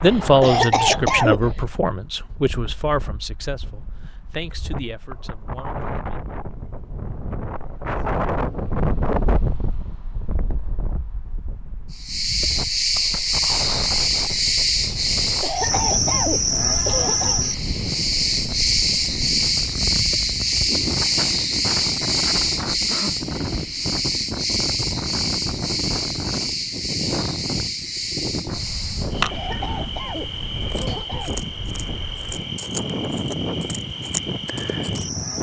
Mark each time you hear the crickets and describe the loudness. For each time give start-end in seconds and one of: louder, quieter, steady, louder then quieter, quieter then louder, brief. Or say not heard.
11.9-35.3 quieter.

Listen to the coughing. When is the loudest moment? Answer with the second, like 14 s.
1 s.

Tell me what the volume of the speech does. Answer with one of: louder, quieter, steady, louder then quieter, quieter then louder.
quieter.